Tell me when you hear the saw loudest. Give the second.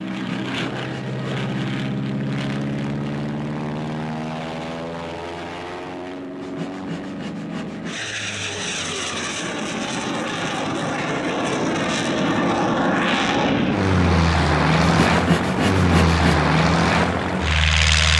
15 s.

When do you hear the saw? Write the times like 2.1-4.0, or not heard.
0.1-1.8, 6.4-8.1, 14.8-16.4.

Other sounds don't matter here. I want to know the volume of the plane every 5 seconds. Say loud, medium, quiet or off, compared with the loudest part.
medium, medium, loud, loud.